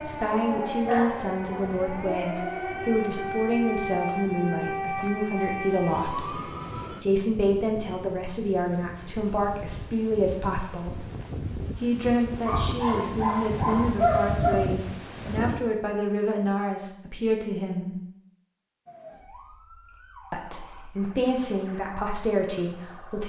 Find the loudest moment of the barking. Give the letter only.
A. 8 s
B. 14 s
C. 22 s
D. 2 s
B.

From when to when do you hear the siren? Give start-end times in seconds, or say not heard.
0.0-7.0, 18.9-23.2.